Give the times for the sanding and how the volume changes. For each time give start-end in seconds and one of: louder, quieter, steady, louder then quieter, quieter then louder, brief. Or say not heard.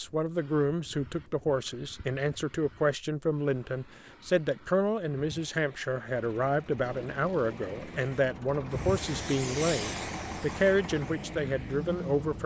not heard.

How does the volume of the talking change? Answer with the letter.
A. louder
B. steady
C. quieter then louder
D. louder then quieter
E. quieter
B.